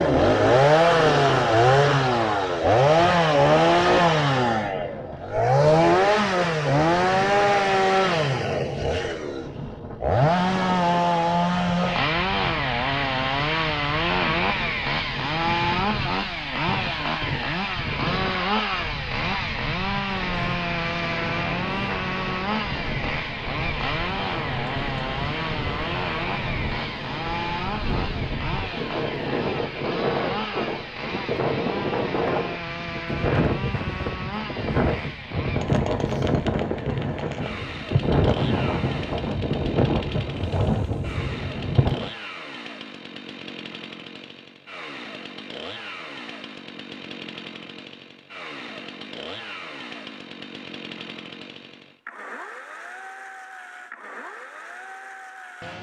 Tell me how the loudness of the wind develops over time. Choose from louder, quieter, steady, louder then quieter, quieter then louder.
louder.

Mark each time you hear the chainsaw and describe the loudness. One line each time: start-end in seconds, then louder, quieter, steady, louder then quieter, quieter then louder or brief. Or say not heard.
0.0-55.7 quieter.